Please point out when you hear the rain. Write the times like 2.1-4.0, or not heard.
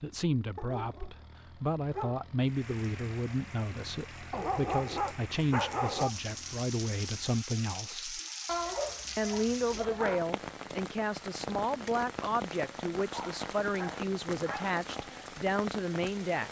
2.4-16.4.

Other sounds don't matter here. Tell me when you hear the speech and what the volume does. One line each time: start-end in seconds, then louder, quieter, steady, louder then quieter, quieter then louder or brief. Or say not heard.
0.0-8.2 steady
9.2-16.4 steady.